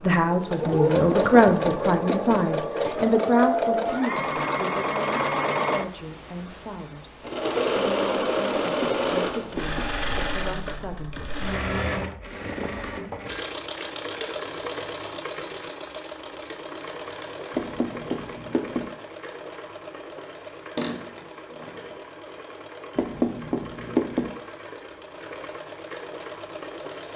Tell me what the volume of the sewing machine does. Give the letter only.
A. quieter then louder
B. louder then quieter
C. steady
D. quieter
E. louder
D.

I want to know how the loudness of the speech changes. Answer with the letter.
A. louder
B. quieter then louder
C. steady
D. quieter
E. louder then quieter
D.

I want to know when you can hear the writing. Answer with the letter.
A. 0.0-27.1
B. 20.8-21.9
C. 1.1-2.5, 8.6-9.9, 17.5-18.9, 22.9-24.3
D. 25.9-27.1
C.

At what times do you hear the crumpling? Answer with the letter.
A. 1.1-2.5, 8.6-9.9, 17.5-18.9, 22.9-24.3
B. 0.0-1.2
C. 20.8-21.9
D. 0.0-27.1
C.